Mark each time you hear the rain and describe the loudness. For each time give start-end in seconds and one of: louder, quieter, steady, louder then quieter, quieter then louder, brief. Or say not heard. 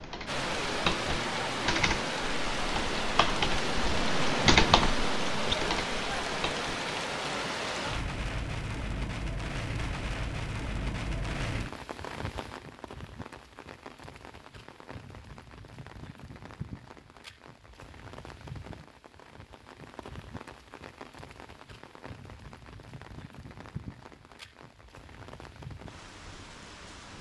0.0-27.1 quieter.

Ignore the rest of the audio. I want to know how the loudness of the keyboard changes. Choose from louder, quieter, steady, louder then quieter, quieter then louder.
louder then quieter.